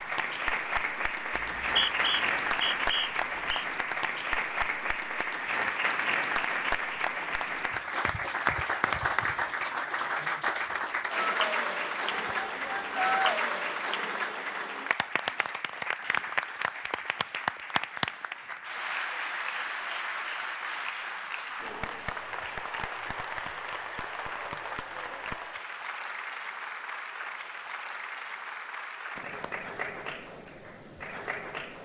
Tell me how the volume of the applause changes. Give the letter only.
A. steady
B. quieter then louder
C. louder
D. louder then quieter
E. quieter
E.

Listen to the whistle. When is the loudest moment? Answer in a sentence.
The volume of the whistle peaks at 2 seconds.